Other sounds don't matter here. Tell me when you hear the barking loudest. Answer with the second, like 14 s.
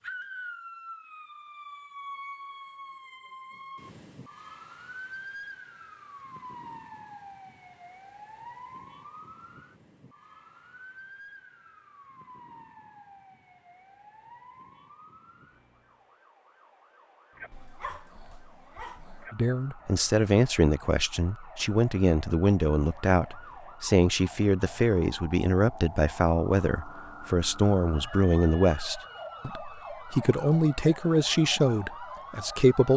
18 s.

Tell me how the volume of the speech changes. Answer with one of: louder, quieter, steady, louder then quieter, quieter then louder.
steady.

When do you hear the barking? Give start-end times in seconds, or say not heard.
17.5-19.3.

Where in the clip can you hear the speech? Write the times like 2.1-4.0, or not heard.
19.3-32.9.